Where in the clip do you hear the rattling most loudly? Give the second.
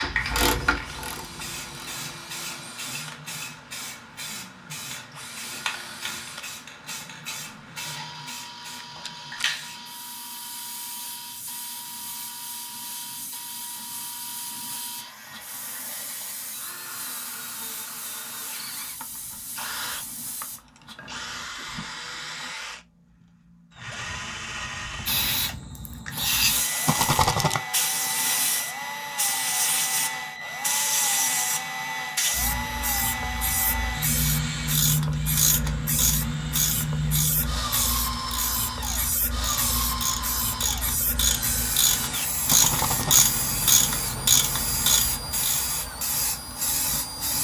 27 s.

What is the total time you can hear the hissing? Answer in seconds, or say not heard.
44 s.